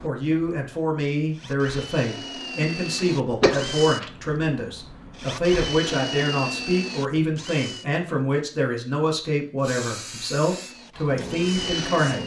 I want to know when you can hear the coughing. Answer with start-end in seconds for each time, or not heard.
2.6-4.1.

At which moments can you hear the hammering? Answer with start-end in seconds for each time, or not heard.
not heard.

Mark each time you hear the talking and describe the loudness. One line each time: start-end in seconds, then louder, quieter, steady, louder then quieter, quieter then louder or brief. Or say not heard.
0.0-12.2 steady.